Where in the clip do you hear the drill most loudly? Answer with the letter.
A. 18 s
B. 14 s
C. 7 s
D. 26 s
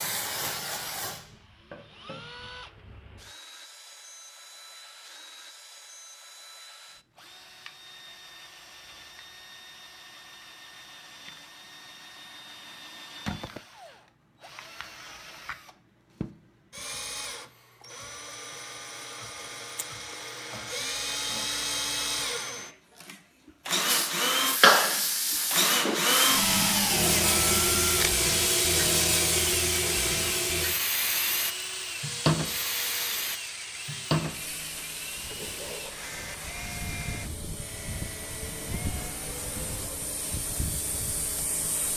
D.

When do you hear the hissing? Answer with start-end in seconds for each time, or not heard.
0.0-2.3, 23.9-41.9.